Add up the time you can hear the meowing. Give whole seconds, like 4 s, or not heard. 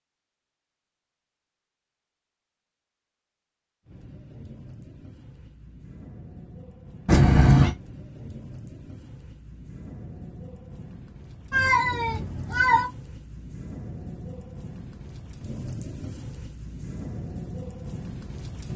2 s.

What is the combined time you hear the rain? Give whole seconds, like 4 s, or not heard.
15 s.